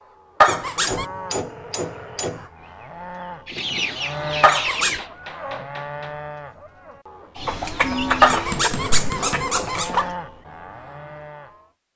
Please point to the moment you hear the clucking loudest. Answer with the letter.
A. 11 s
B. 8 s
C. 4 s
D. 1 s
B.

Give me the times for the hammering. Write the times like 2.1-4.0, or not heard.
0.5-2.5, 4.8-6.2, 8.3-9.9.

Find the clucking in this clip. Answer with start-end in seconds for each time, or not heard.
3.5-5.0, 7.3-10.2.